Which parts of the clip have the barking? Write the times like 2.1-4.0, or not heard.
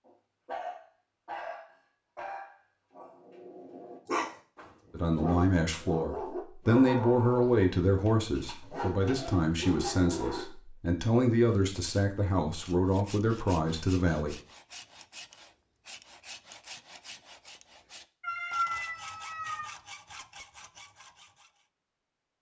0.1-10.5.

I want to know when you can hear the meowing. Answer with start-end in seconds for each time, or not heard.
18.2-19.8.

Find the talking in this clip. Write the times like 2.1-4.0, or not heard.
4.9-14.3.